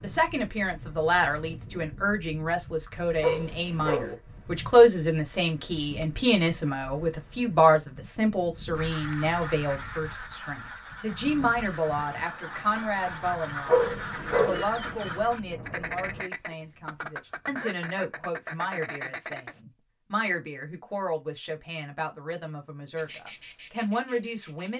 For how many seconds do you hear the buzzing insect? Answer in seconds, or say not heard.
2 s.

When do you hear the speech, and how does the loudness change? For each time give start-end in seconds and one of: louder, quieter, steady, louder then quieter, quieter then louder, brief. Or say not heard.
0.0-24.7 quieter.